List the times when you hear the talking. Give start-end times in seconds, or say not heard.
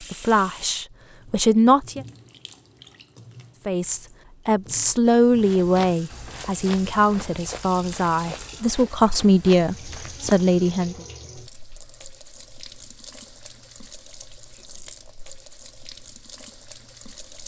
0.1-2.0, 3.6-11.0.